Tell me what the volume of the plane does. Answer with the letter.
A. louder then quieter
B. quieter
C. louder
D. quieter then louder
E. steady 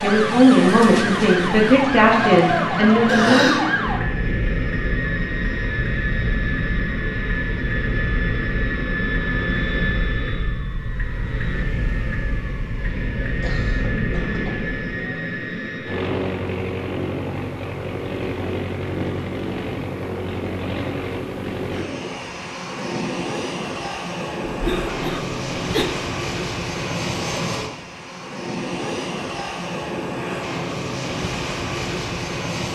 E.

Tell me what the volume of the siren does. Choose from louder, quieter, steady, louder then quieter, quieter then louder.
quieter.